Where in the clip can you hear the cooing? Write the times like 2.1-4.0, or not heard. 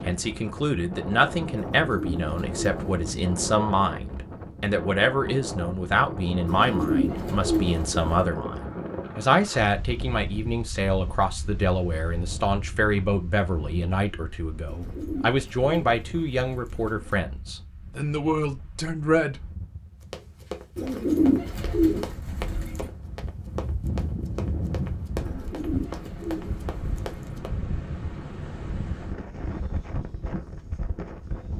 1.6-3.0, 6.5-8.3, 14.7-17.2, 20.8-22.9, 25.2-27.4.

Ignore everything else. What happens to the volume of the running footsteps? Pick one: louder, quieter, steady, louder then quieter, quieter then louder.
steady.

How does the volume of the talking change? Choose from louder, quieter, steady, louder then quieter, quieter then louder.
steady.